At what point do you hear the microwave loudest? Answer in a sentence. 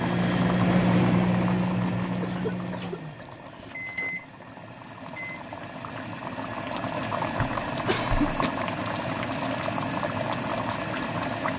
The loudest moment of the microwave is at 1 second.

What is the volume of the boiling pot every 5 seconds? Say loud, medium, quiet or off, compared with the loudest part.
medium, loud, loud.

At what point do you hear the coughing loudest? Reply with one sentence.
The loudest moment of the coughing is at 8 seconds.